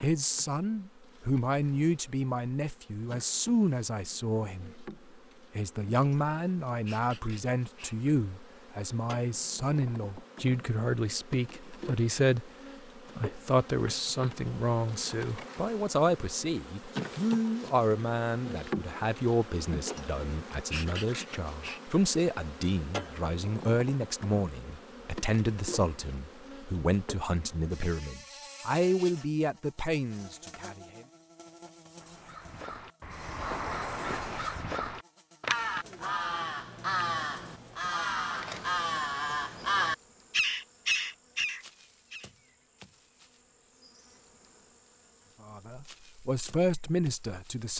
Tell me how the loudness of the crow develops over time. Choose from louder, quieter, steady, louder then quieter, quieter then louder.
louder.